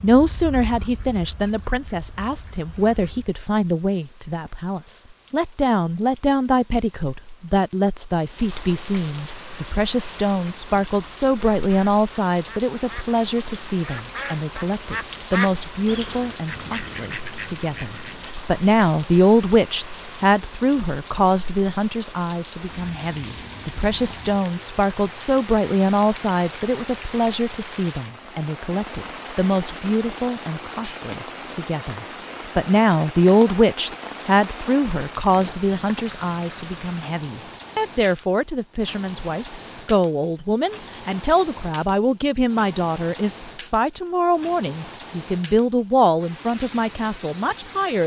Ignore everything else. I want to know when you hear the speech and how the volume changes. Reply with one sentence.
You can hear the speech from 0.0 to 48.0 s, at a steady volume.